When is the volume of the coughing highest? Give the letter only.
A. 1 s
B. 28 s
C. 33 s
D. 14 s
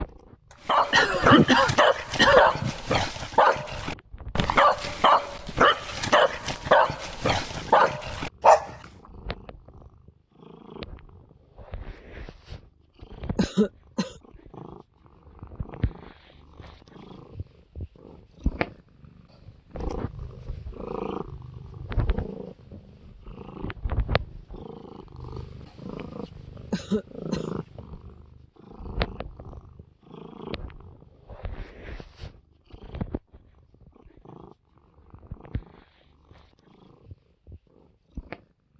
A.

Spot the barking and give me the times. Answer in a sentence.
The barking can be heard from 0.7 to 8.8 s.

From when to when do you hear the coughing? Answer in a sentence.
You can hear the coughing from 0.5 to 2.7 s, from 13.3 to 14.2 s and from 26.7 to 27.4 s.